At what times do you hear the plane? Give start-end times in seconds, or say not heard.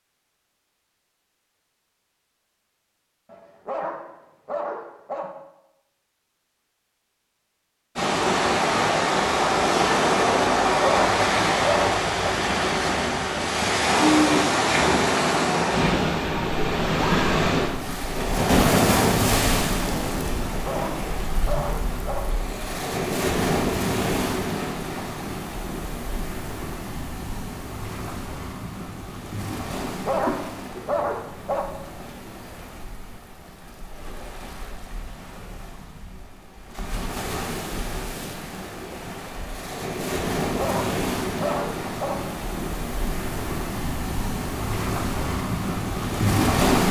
not heard.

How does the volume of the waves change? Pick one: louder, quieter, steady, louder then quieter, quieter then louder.
quieter then louder.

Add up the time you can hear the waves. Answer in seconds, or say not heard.
39 s.